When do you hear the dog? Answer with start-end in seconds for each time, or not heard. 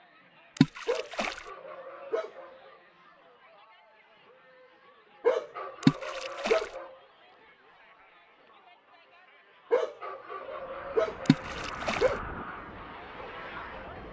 0.8-2.8, 5.2-7.0, 9.7-12.2.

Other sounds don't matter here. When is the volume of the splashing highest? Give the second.
6 s.